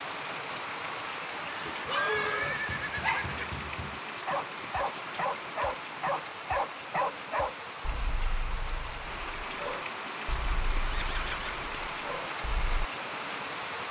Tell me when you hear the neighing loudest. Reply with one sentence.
The loudest moment of the neighing is at 2 seconds.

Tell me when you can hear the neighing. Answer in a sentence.
You can hear the neighing from 1.7 to 3.5 s and from 10.9 to 11.7 s.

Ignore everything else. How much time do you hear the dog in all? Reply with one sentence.
The dog can be heard for 11 seconds in total.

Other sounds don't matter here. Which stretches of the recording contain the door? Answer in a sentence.
The door can't be heard in this clip.